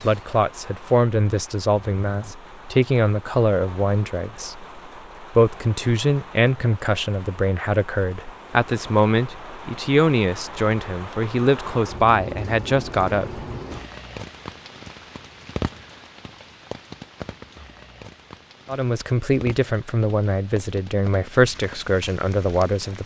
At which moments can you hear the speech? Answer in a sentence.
The speech can be heard from 0.0 to 13.4 s and from 18.6 to 23.0 s.